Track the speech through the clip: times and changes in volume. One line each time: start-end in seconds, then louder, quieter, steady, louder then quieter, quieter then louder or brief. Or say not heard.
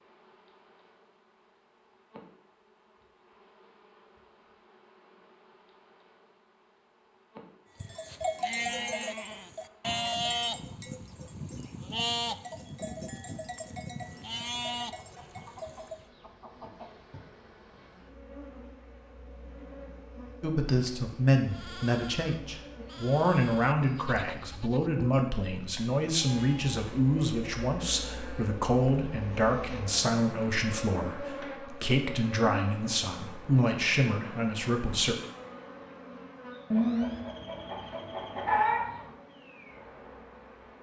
20.4-35.1 steady.